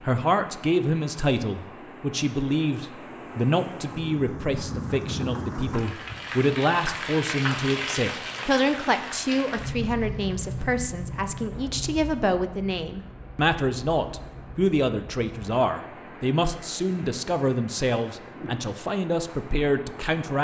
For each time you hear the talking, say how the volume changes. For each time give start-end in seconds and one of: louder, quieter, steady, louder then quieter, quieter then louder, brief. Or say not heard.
0.0-20.3 steady.